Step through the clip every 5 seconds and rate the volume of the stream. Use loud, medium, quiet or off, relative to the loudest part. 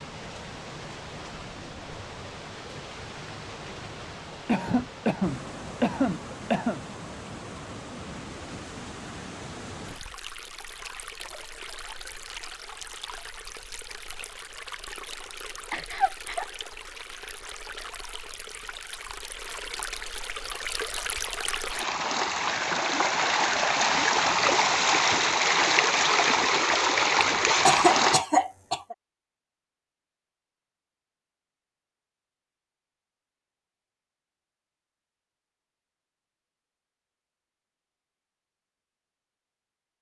quiet, quiet, quiet, quiet, loud, loud, off, off.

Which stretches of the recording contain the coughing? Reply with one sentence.
The coughing can be heard from 4.5 to 6.8 s, from 15.7 to 16.4 s and from 27.6 to 28.9 s.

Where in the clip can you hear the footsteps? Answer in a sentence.
You can't hear the footsteps here.